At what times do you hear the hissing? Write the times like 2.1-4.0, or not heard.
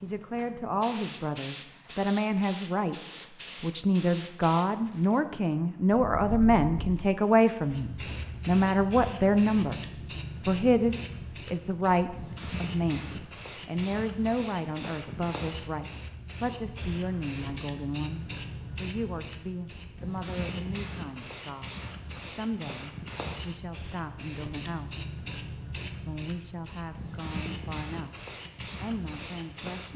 0.0-29.9.